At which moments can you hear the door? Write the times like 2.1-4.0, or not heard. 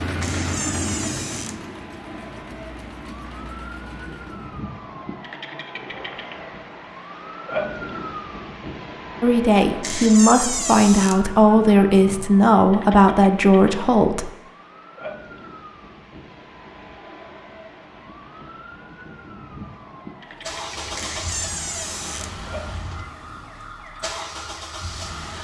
0.2-1.6, 9.8-11.2, 20.9-22.3.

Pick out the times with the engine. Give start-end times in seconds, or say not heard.
0.0-4.5, 20.4-25.4.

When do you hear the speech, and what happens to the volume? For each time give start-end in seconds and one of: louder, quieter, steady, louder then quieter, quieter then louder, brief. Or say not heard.
9.2-14.3 steady.